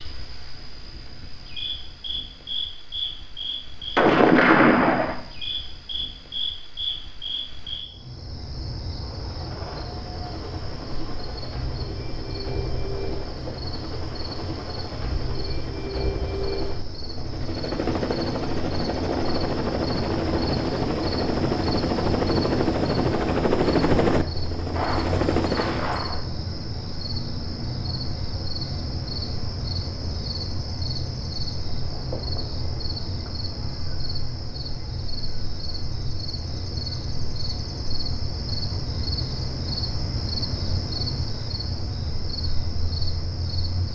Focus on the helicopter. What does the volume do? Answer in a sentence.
The volume of the helicopter goes up.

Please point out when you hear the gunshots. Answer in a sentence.
The gunshots can be heard from 4.0 to 5.2 s and from 24.8 to 26.2 s.